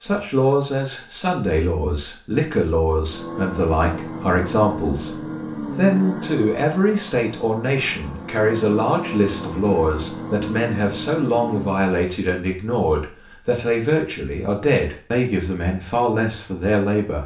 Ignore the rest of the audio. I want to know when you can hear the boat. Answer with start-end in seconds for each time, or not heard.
3.0-11.8.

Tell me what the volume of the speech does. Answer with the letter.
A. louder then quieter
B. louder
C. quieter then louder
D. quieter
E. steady
E.